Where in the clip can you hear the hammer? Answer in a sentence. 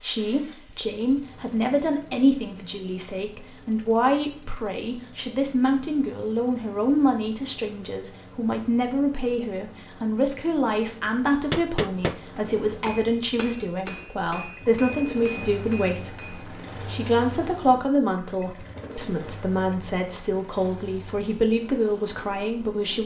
You can hear the hammer from 11.5 to 16.4 s.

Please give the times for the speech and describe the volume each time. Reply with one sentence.
The speech can be heard from 0.0 to 23.0 s, at a steady volume.